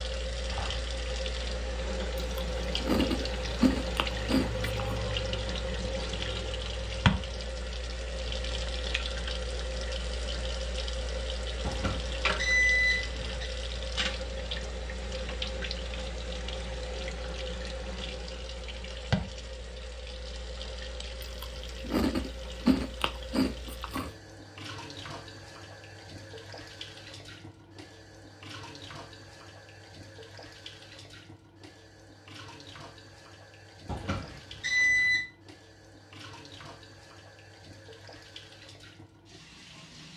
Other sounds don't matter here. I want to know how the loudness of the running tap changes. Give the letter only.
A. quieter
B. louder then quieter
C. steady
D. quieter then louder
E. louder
A.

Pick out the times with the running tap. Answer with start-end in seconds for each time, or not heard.
0.0-40.1.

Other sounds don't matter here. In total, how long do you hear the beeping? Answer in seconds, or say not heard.
3 s.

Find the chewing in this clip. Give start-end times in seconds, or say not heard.
2.1-5.0, 21.2-24.1.